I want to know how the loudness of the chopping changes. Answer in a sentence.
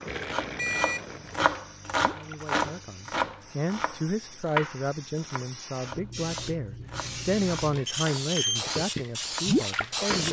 The loudness of the chopping goes down.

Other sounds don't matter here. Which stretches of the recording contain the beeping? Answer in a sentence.
The beeping can be heard from 0.6 to 1.4 s and from 7.8 to 8.7 s.